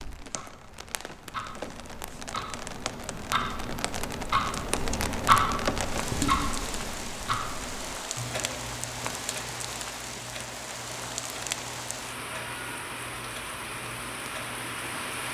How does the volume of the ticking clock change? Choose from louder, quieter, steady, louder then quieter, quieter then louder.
louder then quieter.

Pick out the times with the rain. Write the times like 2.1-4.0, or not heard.
0.0-15.2.